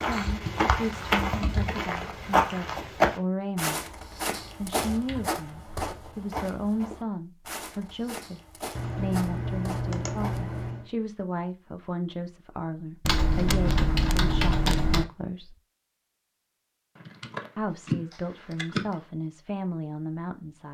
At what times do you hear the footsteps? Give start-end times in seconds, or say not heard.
0.0-10.6.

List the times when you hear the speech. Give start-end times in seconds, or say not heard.
0.1-3.9, 4.6-15.6, 17.6-20.6.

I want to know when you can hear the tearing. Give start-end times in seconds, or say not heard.
not heard.